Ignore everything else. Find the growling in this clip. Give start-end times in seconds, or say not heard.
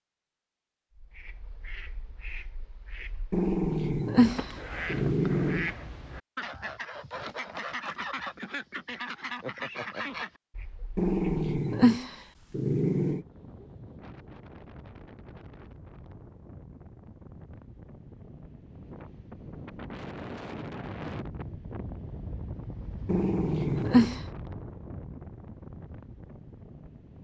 3.3-5.7, 10.9-13.2, 23.1-24.2.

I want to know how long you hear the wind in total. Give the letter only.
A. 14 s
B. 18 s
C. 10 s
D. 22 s
A.